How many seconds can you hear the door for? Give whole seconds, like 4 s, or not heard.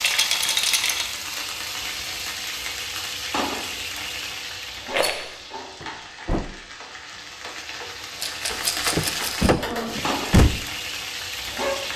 3 s.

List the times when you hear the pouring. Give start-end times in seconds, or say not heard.
not heard.